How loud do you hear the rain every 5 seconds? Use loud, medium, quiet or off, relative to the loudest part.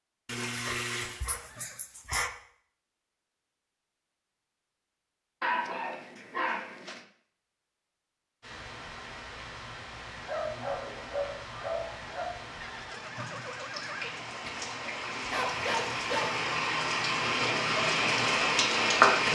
off, quiet, quiet, loud.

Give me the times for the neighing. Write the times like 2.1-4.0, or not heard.
1.2-1.9, 12.6-14.2.